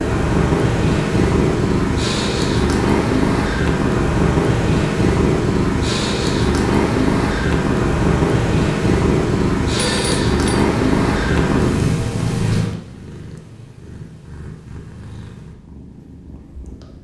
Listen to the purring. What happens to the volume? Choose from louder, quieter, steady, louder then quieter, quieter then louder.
quieter.